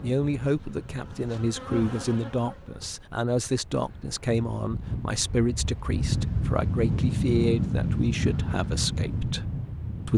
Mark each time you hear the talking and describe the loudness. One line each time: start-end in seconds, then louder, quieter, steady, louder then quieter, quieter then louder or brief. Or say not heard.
0.0-9.4 steady.